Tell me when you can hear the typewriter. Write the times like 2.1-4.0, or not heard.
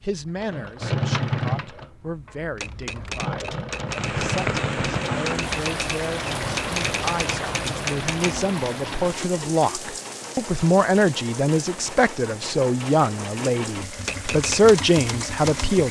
2.5-8.4, 14.0-15.8.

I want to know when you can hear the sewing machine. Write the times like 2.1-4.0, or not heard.
0.0-15.8.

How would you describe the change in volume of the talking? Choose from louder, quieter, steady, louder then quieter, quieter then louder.
louder.